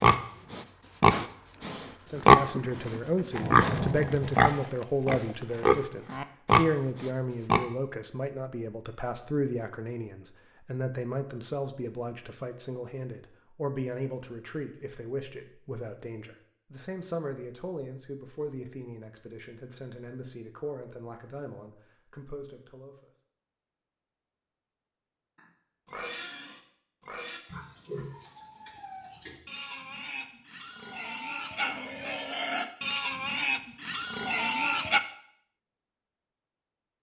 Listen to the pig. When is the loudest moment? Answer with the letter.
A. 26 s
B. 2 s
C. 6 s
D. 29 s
B.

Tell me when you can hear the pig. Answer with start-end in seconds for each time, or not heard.
0.0-7.6, 25.4-35.0.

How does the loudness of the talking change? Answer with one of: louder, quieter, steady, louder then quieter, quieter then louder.
quieter.